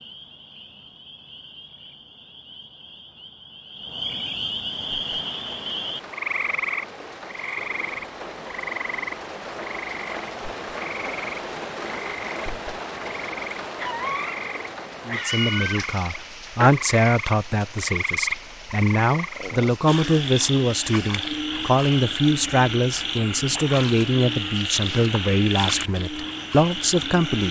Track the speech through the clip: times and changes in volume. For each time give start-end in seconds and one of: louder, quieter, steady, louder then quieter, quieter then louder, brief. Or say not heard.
15.1-27.4 steady.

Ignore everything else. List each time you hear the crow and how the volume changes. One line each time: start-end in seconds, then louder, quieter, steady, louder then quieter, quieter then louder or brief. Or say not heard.
not heard.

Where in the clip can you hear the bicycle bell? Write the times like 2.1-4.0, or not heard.
not heard.